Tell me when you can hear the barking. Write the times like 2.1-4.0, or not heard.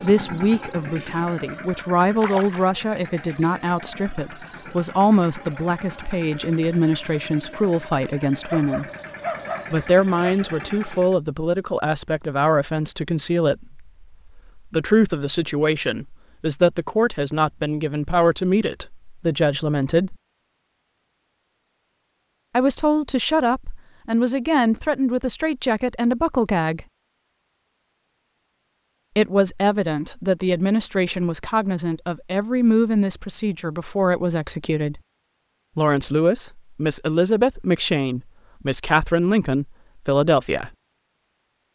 8.4-10.3.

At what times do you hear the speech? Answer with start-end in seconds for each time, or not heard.
0.0-8.8, 9.7-20.1, 22.6-26.9, 29.1-35.0, 35.8-40.7.